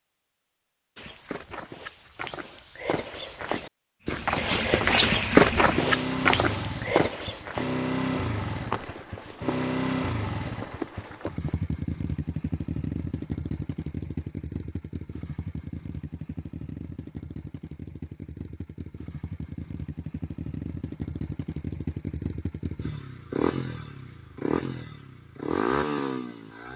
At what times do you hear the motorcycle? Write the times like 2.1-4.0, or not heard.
4.1-26.7.